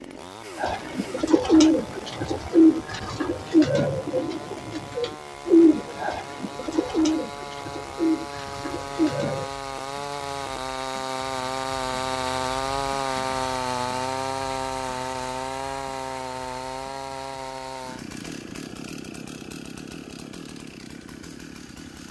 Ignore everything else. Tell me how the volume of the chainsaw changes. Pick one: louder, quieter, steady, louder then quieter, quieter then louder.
louder then quieter.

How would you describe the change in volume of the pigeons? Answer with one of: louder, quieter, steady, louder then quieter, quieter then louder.
quieter.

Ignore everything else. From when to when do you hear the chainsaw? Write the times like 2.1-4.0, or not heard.
0.0-22.0.